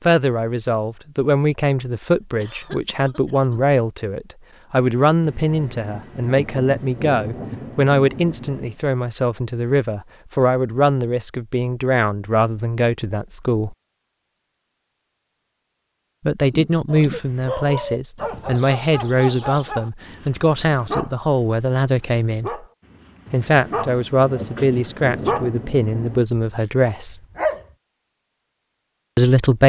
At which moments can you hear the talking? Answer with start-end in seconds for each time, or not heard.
0.0-13.8, 16.2-22.6, 23.3-27.2, 29.1-29.6.